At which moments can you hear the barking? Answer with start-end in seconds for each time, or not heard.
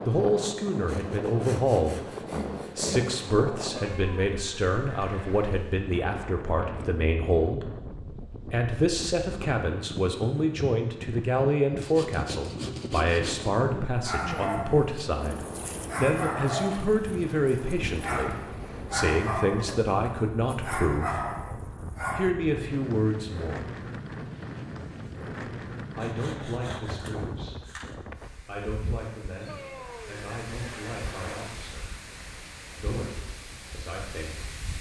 13.8-22.4.